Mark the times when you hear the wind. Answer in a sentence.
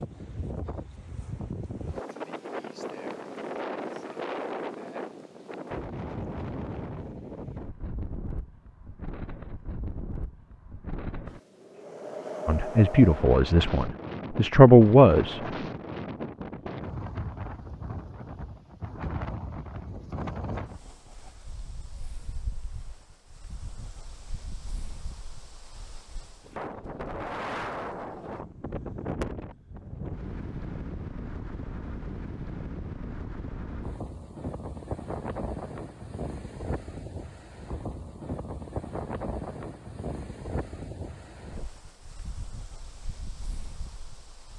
The wind can be heard from 0.0 to 44.5 s.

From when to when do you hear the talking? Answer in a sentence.
The talking can be heard from 12.4 to 15.4 s.